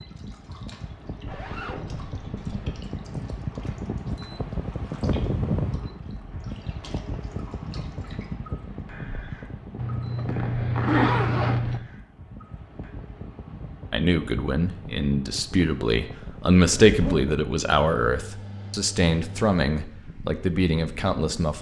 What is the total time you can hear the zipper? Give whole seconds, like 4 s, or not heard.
4 s.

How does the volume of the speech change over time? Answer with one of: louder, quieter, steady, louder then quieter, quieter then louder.
louder then quieter.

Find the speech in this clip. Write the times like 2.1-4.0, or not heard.
13.9-21.5.